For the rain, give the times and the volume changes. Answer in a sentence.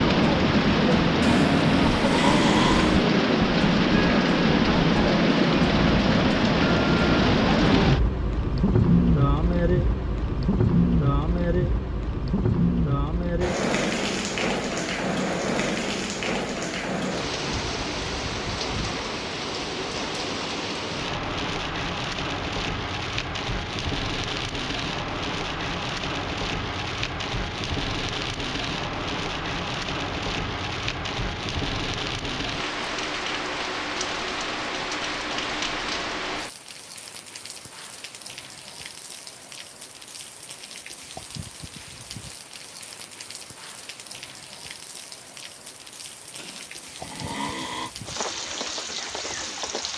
The rain can be heard from 0.0 to 49.9 s, getting quieter.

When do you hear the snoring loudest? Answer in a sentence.
The volume of the snoring peaks at 2 seconds.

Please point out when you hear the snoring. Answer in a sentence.
The snoring can be heard from 1.2 to 3.0 s and from 46.4 to 47.9 s.